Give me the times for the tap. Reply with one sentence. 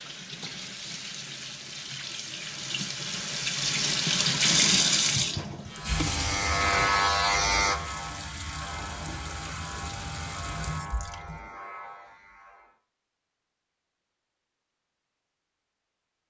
You can hear the tap from 0.0 to 11.4 s.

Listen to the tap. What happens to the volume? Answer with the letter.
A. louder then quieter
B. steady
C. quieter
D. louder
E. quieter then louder
A.